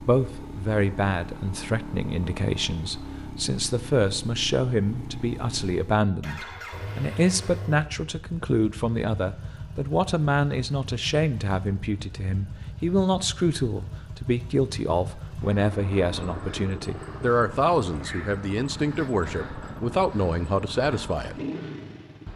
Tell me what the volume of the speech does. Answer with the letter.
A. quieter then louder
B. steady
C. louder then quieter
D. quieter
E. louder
B.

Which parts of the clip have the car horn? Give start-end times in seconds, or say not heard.
not heard.